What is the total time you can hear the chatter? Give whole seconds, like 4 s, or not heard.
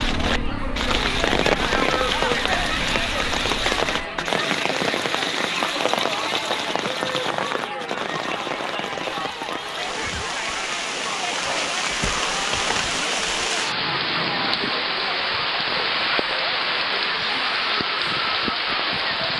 19 s.